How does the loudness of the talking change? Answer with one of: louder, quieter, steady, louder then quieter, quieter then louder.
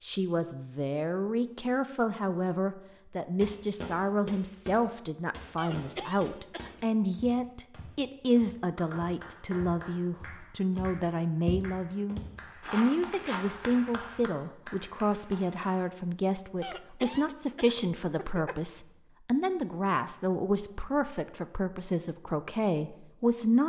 steady.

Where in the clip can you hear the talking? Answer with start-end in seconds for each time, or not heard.
0.0-23.6.